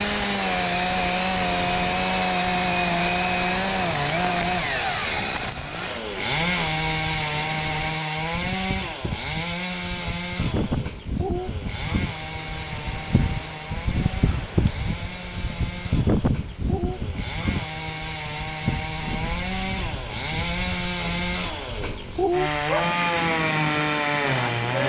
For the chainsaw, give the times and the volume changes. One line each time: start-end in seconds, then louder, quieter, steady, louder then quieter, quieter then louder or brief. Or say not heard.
0.0-24.8 quieter then louder.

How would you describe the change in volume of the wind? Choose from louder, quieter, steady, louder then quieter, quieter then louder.
louder then quieter.